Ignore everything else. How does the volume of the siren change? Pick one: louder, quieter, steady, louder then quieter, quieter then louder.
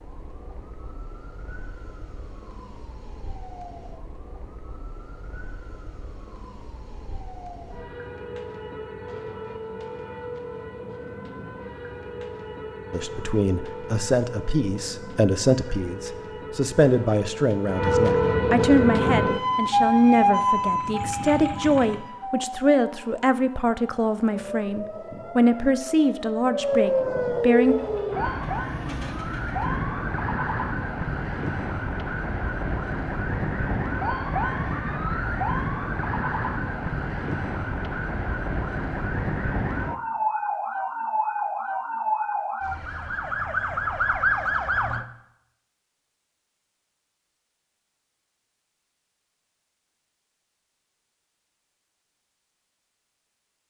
louder.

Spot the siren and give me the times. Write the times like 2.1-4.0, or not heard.
0.0-45.0.